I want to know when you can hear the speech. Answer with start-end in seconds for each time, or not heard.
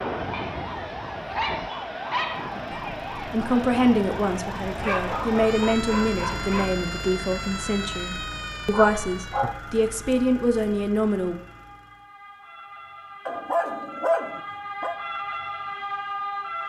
2.7-11.3.